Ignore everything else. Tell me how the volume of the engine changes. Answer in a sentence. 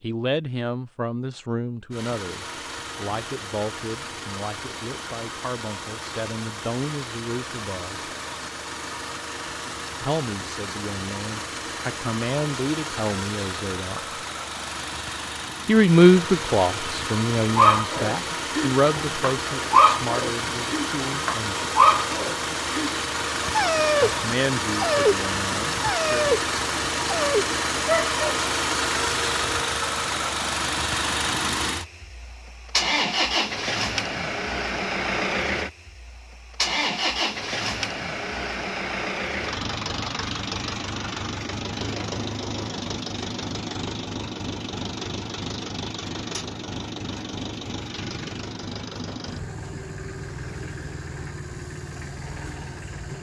The loudness of the engine goes up, then down.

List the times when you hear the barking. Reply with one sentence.
The barking can be heard from 17.6 to 28.1 s.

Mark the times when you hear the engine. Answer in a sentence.
You can hear the engine from 1.9 to 53.1 s.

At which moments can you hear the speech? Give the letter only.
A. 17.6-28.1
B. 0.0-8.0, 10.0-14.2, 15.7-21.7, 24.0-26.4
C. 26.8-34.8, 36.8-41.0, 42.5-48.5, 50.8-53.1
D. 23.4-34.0
B.